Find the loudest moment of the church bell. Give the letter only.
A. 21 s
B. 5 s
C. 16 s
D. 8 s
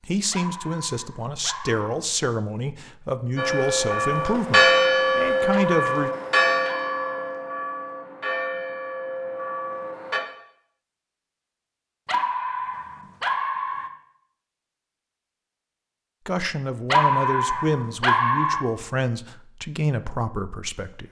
B.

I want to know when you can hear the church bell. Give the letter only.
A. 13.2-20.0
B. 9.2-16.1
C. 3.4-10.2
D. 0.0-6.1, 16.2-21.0
C.